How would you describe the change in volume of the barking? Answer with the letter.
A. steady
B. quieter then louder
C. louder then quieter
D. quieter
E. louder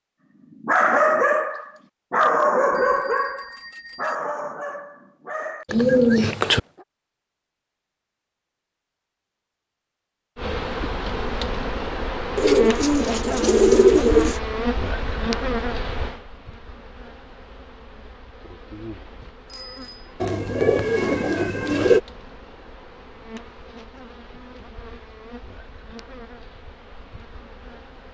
D.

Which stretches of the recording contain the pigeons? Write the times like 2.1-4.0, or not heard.
5.7-6.6, 12.3-14.4, 20.2-22.0.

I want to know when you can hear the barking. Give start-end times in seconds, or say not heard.
0.6-6.8.